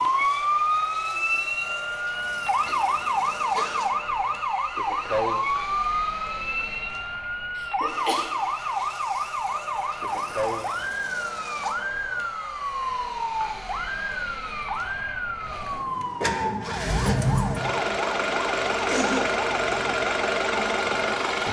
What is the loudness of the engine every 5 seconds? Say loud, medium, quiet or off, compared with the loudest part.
quiet, quiet, quiet, loud, loud.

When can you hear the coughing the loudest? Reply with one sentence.
The loudest moment of the coughing is at 19 seconds.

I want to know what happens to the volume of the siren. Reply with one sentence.
The loudness of the siren goes down.